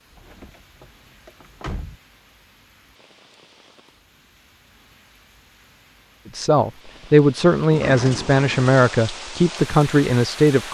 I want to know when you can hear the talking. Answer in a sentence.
You can hear the talking from 6.3 to 10.6 s.